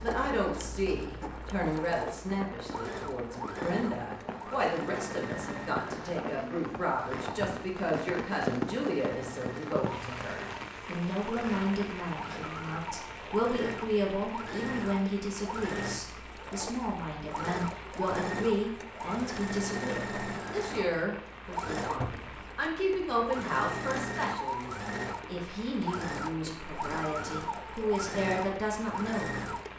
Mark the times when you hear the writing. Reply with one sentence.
The writing can't be heard in this clip.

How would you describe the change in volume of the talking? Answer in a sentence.
The volume of the talking stays about the same.